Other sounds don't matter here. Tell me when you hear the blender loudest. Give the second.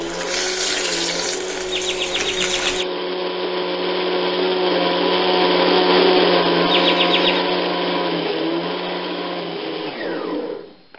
6 s.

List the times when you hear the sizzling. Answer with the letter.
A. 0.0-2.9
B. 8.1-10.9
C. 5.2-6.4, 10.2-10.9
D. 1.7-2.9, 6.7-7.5
A.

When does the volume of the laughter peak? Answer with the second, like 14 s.
7 s.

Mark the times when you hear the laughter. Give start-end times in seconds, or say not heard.
1.7-2.9, 6.7-7.5.